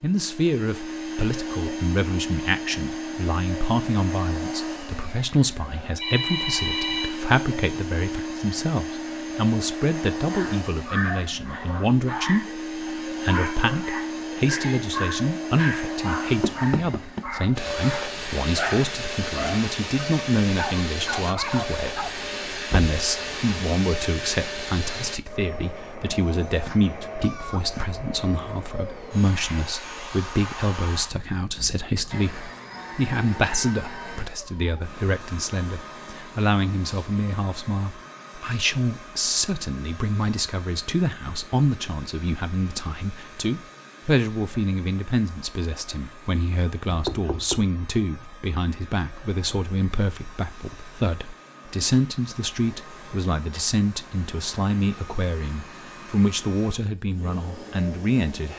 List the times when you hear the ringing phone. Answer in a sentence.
The ringing phone can be heard from 6.0 to 7.2 s.